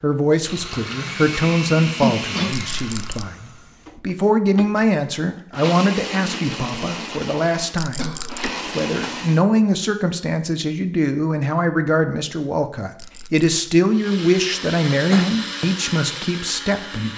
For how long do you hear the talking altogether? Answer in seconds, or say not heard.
17 s.